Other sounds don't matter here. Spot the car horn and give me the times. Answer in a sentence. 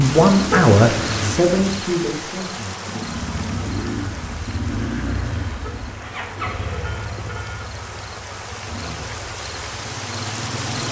The car horn can be heard from 0.5 to 1.4 s and from 5.6 to 7.7 s.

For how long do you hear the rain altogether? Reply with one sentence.
The rain can be heard for 11 seconds in total.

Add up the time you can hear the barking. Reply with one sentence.
The barking can't be heard in this clip.